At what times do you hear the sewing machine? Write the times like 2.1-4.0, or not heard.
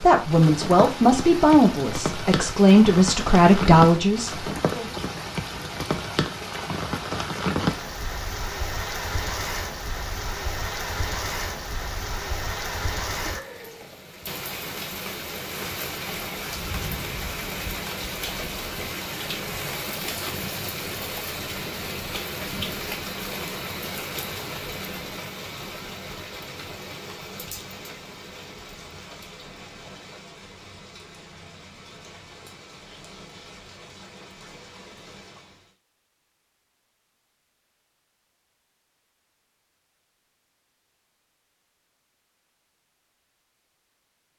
not heard.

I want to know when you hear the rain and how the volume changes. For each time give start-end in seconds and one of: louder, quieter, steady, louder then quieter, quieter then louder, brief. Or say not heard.
0.0-35.7 quieter.